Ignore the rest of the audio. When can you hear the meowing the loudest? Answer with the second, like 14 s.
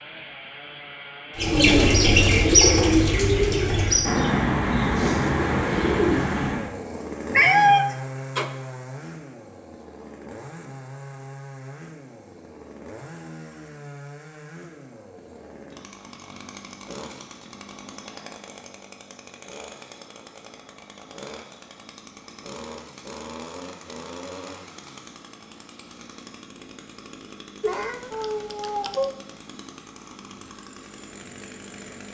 8 s.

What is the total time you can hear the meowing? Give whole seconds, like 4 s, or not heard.
3 s.